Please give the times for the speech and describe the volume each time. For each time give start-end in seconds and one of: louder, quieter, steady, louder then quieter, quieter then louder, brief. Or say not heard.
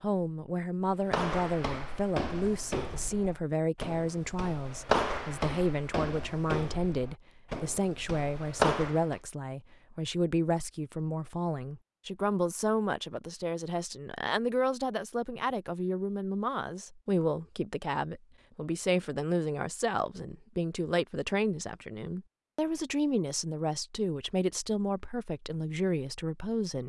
0.0-26.8 steady.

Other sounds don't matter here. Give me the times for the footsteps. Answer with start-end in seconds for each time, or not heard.
1.0-9.2.